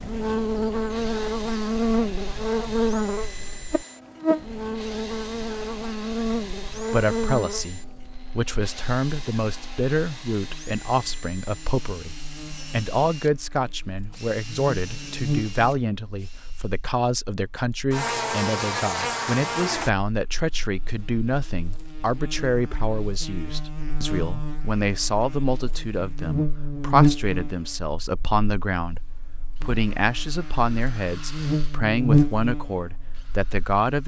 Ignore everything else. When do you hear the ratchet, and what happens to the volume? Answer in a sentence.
You can't hear the ratchet here.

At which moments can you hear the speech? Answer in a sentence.
The speech can be heard from 6.9 to 34.0 s.